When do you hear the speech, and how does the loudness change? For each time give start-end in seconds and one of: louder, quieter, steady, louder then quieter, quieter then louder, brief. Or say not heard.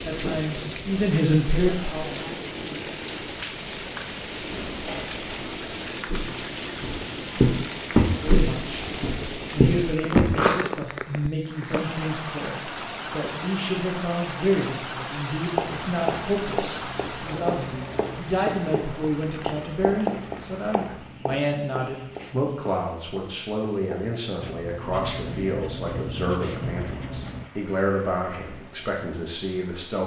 0.0-2.1 brief
8.2-30.0 steady.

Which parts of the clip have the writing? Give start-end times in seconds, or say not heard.
15.5-27.5.